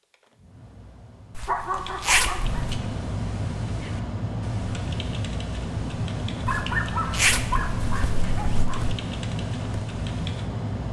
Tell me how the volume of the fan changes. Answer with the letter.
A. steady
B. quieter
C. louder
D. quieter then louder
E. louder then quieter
C.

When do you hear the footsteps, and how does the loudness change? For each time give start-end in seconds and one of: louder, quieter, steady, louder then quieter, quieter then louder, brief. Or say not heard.
not heard.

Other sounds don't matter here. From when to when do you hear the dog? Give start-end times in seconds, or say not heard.
1.4-2.7, 6.3-8.8.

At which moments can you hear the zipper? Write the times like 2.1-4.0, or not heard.
1.4-2.6, 6.5-8.9.